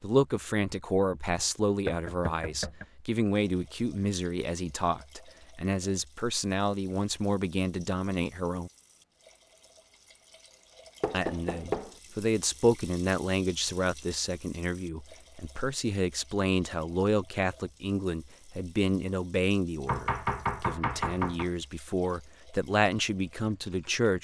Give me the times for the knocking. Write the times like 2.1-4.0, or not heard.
1.9-2.9, 11.0-11.9, 19.9-21.5.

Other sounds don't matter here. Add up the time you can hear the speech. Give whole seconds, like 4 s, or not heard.
22 s.